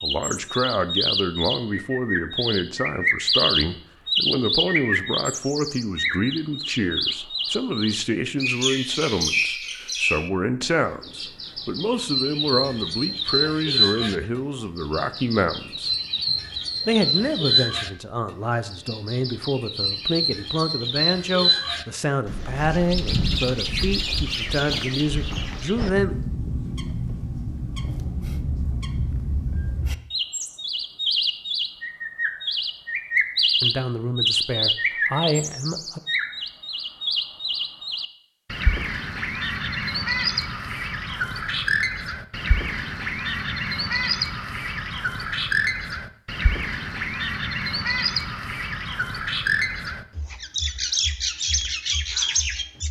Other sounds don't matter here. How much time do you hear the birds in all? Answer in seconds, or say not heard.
53 s.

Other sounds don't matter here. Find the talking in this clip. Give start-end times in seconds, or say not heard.
0.0-15.9, 16.9-26.1, 33.6-36.0.